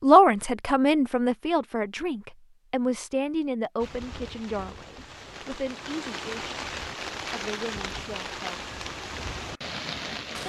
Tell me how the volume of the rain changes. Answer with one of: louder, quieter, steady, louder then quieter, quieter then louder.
louder.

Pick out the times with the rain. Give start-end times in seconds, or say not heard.
3.8-10.4.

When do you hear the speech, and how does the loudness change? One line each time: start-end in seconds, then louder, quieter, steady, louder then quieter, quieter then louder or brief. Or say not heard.
0.0-6.5 quieter
7.3-8.7 brief.